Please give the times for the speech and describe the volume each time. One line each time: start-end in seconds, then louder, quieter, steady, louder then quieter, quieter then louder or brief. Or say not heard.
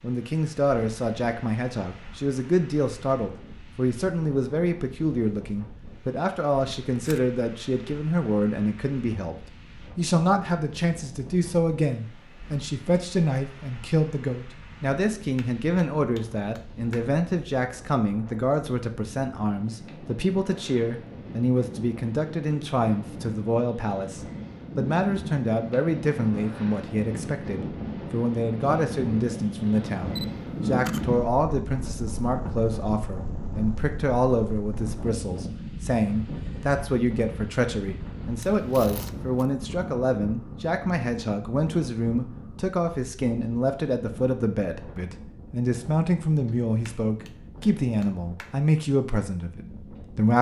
0.0-9.3 steady
9.9-50.3 steady.